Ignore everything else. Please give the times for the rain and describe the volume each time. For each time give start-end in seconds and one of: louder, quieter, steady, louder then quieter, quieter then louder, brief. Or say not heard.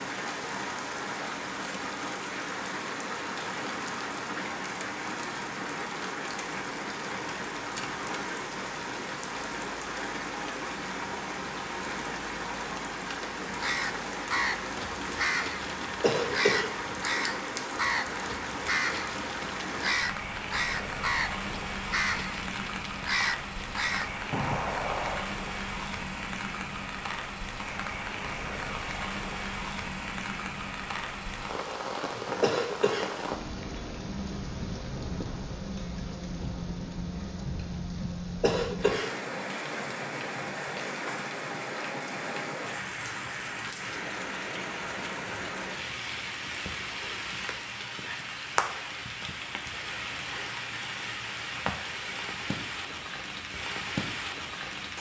0.0-54.9 steady.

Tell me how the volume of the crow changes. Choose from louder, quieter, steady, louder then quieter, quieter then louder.
steady.